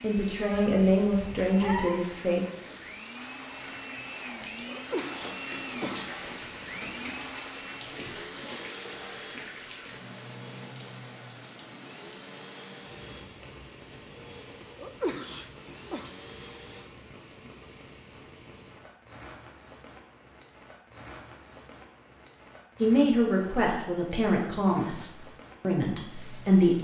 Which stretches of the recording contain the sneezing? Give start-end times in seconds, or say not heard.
4.7-6.3, 14.8-16.1.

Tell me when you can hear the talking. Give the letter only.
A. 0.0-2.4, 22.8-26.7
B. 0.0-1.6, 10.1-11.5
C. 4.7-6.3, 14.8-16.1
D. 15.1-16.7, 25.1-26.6
A.